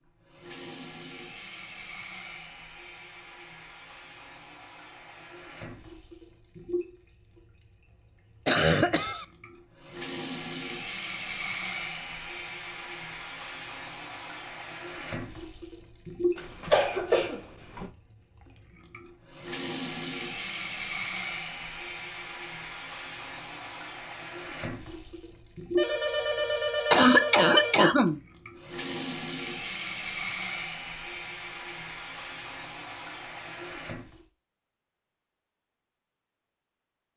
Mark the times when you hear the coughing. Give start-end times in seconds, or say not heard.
8.4-9.2, 16.4-17.9, 26.9-28.2.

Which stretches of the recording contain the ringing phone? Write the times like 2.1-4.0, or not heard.
25.8-27.8.